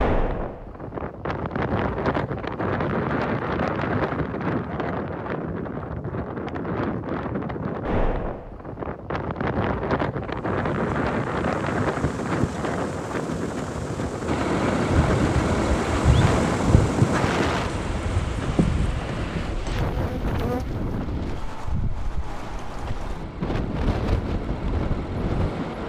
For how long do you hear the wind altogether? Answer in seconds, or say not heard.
26 s.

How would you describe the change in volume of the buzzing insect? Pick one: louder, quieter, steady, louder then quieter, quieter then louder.
louder then quieter.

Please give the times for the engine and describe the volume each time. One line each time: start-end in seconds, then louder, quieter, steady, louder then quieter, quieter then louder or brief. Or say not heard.
14.2-25.8 quieter then louder.